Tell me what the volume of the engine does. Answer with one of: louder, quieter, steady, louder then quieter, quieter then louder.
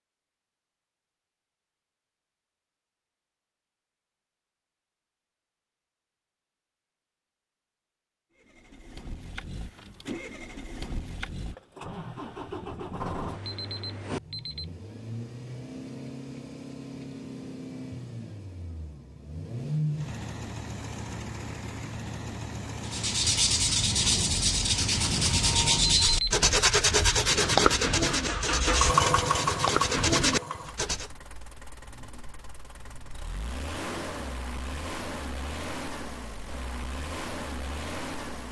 louder then quieter.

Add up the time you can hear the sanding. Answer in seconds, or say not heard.
8 s.